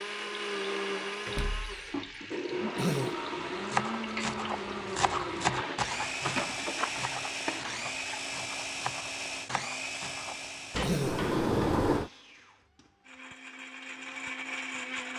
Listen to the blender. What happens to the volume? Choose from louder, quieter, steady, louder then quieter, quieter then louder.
quieter.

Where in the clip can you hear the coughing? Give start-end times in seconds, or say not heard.
2.8-3.2, 10.8-11.2.